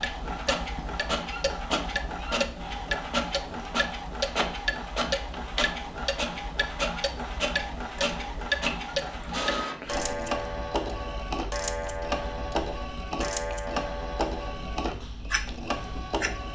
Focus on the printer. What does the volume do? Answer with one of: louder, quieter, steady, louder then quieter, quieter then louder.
steady.